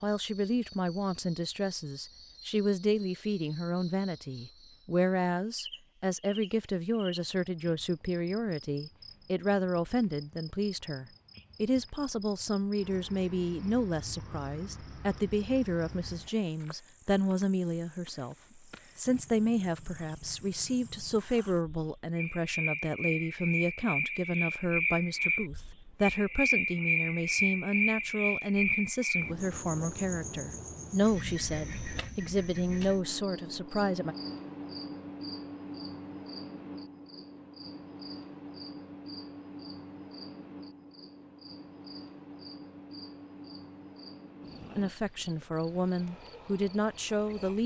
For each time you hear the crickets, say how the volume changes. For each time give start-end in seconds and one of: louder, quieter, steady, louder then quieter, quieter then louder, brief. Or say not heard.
0.0-47.6 louder then quieter.